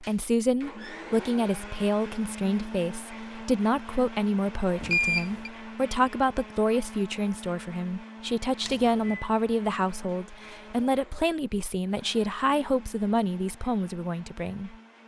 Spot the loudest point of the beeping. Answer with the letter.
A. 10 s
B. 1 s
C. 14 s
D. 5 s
D.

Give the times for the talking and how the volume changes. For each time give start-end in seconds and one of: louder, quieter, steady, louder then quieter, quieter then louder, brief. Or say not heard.
0.0-14.8 steady.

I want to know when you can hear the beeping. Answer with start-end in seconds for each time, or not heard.
4.8-5.5, 8.7-9.2.